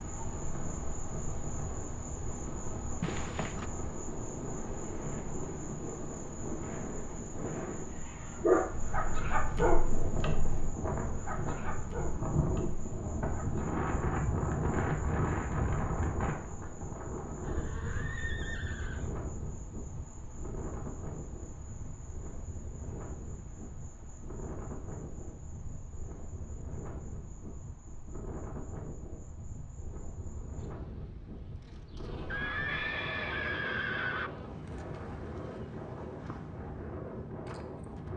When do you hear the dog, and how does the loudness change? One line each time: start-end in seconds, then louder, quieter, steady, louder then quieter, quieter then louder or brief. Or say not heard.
7.8-13.8 quieter.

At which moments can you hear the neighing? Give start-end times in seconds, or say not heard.
3.0-3.7, 17.4-19.1, 32.3-34.3.